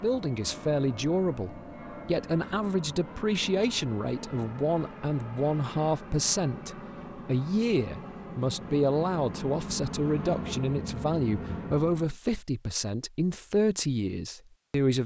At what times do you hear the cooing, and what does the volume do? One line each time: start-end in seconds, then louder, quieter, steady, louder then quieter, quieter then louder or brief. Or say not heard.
not heard.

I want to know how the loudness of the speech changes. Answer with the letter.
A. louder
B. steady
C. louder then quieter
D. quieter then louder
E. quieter
B.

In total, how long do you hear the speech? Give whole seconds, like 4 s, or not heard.
15 s.